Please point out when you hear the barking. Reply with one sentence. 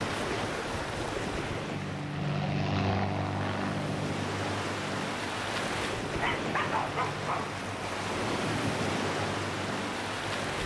The barking can be heard from 6.1 to 7.5 s.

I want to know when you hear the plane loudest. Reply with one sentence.
The loudest moment of the plane is at 3 seconds.